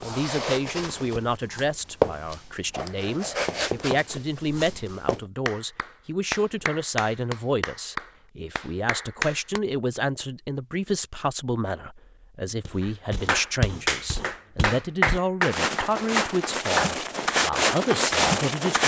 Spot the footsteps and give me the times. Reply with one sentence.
The footsteps can be heard from 0.0 to 5.2 s and from 12.7 to 18.8 s.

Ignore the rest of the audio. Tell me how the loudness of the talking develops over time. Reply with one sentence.
The volume of the talking stays about the same.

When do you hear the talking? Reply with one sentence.
The talking can be heard from 0.0 to 18.8 s.